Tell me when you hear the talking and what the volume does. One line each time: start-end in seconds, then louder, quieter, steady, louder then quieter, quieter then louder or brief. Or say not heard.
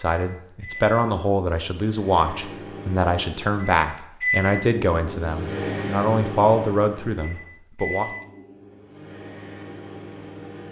0.0-8.1 steady.